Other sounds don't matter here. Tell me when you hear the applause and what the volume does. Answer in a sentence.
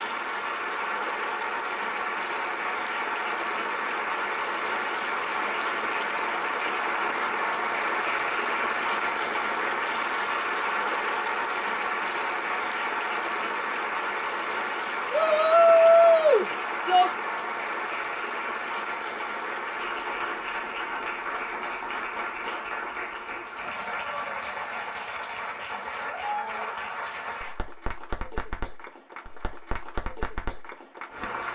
The applause can be heard from 0.0 to 31.5 s, getting quieter.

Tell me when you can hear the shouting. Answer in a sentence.
The shouting can be heard from 15.1 to 17.1 s.